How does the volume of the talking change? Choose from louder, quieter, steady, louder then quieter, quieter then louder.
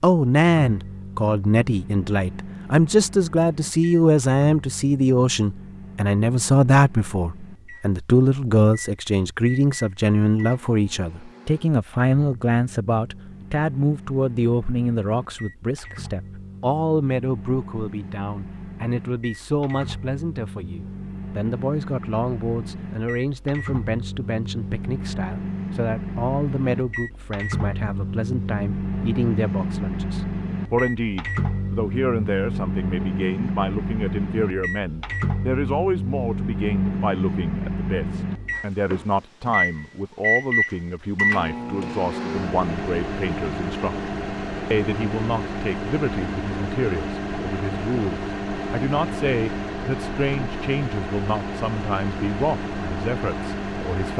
quieter.